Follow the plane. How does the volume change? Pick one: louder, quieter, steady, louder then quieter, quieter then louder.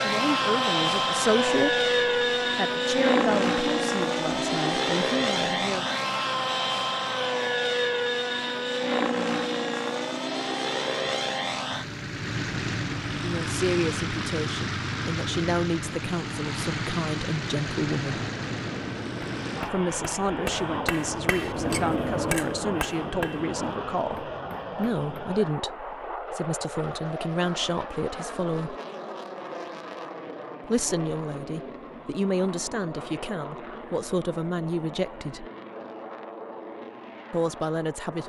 quieter.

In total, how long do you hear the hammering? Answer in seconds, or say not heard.
6 s.